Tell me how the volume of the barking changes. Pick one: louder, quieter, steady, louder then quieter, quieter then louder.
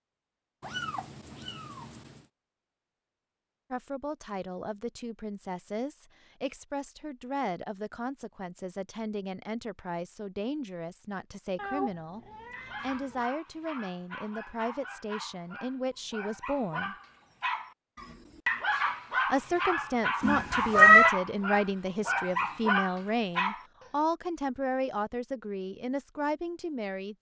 louder.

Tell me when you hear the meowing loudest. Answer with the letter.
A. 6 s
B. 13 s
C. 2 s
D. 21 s
D.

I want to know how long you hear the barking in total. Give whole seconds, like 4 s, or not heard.
11 s.